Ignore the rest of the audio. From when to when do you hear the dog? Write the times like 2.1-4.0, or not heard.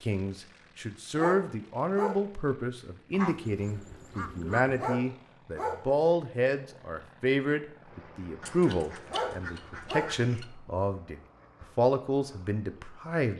1.1-2.3, 4.8-5.9, 9.1-10.2.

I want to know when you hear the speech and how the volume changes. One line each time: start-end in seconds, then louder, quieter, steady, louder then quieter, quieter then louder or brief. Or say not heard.
0.0-13.3 steady.